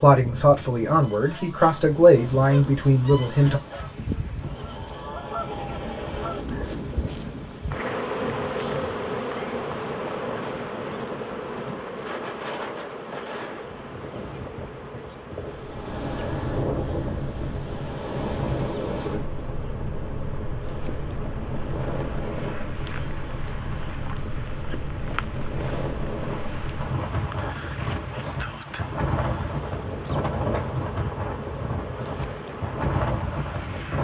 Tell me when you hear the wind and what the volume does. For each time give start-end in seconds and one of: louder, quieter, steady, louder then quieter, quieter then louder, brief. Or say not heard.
0.1-33.9 louder.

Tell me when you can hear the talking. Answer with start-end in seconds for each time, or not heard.
0.0-3.6.